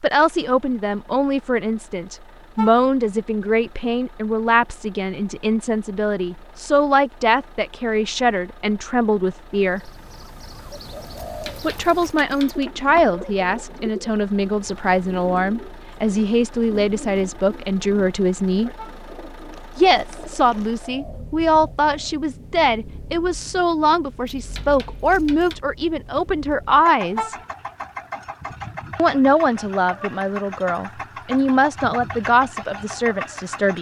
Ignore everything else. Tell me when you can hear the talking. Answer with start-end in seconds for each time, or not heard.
0.0-9.9, 11.6-18.7, 19.8-27.4, 28.9-33.7.